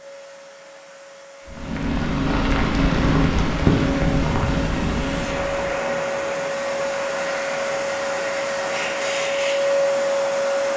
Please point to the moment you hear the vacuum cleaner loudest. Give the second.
10 s.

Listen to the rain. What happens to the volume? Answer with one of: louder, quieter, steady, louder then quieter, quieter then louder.
quieter.